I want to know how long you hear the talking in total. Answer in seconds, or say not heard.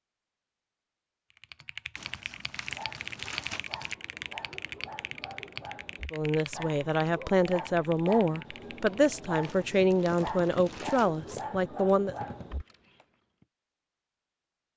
6 s.